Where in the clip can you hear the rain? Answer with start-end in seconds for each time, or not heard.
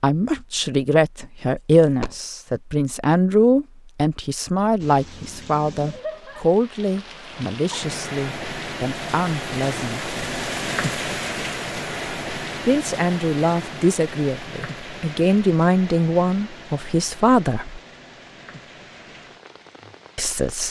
4.8-20.6.